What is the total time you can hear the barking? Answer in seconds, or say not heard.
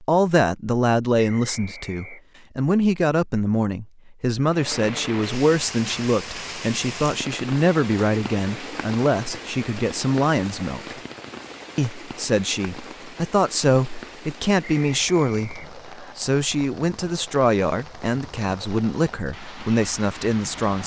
not heard.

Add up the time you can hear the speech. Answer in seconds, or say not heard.
20 s.